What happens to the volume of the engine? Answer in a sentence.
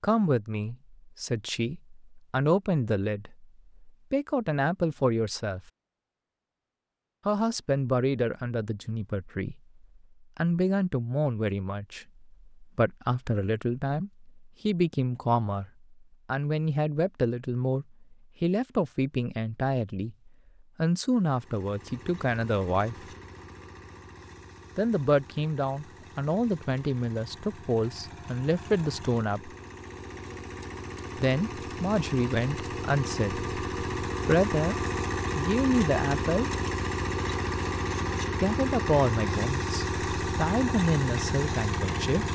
The volume of the engine goes up.